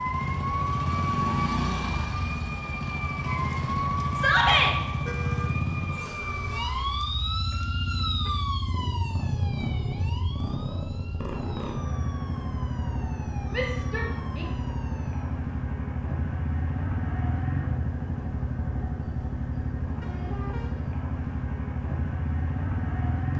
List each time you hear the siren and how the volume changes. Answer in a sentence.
You can hear the siren from 0.0 to 15.4 s, getting quieter.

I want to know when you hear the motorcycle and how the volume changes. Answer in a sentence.
You can hear the motorcycle from 0.0 to 23.3 s, at a steady volume.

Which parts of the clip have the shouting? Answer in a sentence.
You can hear the shouting from 4.2 to 4.8 s and from 13.5 to 14.4 s.